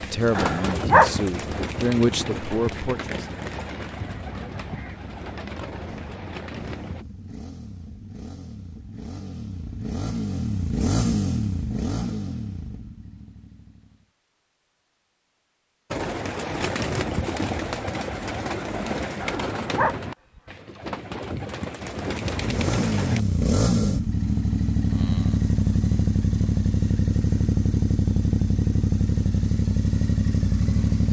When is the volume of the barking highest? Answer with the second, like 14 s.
1 s.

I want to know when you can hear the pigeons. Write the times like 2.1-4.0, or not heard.
0.0-7.0, 15.9-23.2.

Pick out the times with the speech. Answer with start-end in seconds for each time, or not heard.
0.0-3.2.